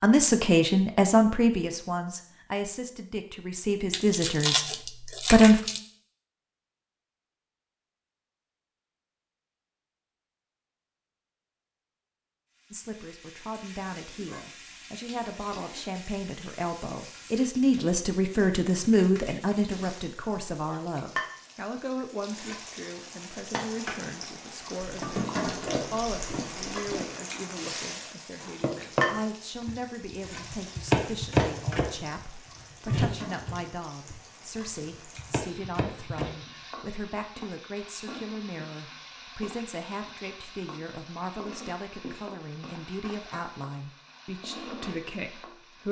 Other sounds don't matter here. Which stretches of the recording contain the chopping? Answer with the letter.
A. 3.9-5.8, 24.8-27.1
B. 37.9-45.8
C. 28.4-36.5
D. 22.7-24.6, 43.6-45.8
C.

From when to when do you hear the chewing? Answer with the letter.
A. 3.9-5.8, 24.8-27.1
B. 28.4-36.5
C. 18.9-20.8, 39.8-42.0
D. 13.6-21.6
A.